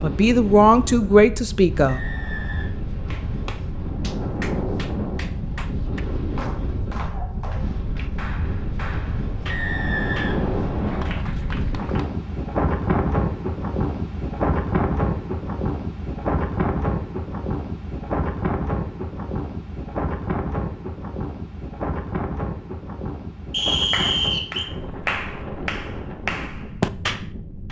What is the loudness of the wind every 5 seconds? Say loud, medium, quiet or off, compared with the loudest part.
medium, medium, loud, loud, medium, medium.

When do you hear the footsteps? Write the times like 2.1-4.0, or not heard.
not heard.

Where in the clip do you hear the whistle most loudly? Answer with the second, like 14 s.
24 s.